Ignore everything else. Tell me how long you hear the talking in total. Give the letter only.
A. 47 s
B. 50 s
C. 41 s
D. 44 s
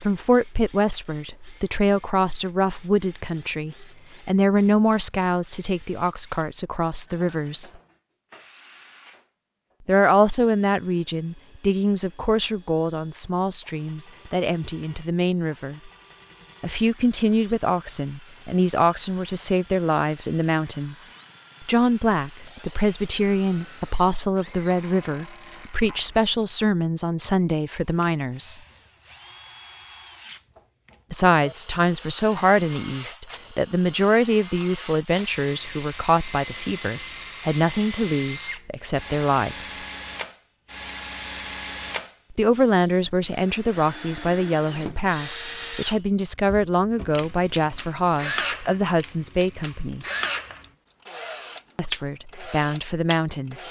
D.